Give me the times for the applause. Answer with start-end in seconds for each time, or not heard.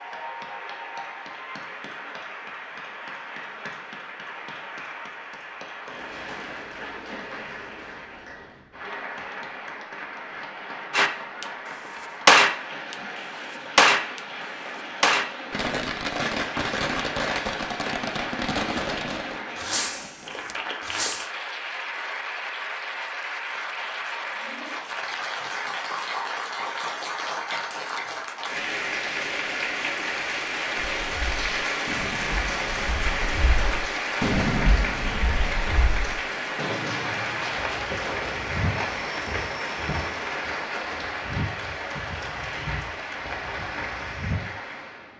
0.0-45.1.